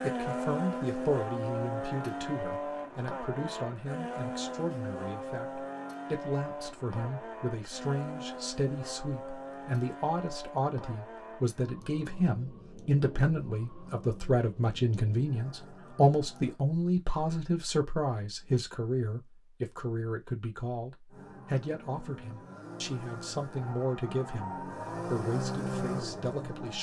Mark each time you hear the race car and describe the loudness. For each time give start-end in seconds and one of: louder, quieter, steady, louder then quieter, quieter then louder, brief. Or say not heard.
0.0-16.6 quieter
21.1-26.7 louder.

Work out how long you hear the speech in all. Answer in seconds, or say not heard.
27 s.